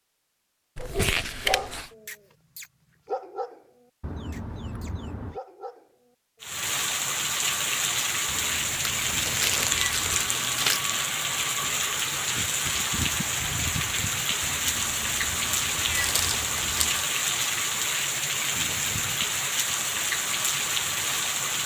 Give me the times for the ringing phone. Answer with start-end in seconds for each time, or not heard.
not heard.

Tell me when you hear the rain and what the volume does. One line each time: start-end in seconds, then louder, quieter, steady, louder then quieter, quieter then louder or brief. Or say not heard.
6.4-21.6 steady.